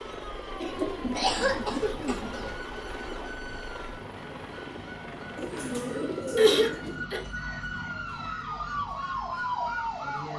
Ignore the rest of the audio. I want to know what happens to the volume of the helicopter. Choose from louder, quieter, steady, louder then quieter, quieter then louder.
steady.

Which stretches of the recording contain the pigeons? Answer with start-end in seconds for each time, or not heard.
0.8-2.5, 5.3-7.0.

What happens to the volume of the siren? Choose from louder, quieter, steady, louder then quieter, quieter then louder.
louder.